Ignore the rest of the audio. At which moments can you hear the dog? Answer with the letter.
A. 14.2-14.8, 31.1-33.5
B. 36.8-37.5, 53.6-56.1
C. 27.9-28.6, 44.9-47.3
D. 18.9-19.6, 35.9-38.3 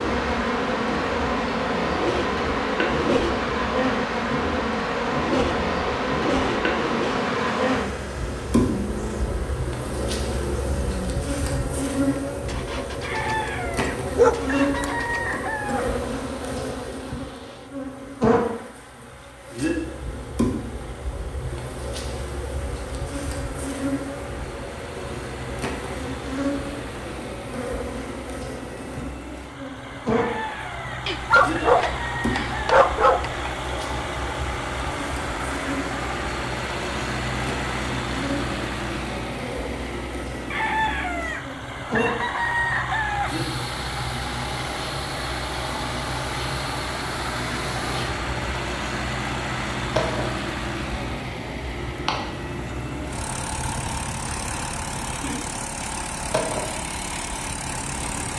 A.